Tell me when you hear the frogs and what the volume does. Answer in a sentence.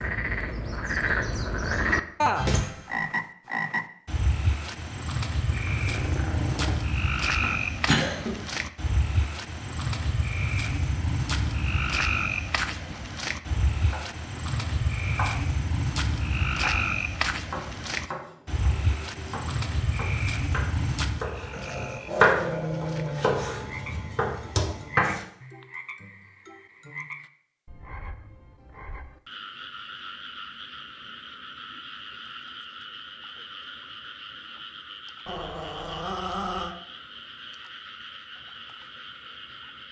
The frogs can be heard from 0.0 to 39.8 s, getting quieter.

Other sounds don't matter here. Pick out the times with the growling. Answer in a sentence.
The growling can be heard from 5.5 to 6.8 s, from 21.5 to 23.4 s and from 35.2 to 36.8 s.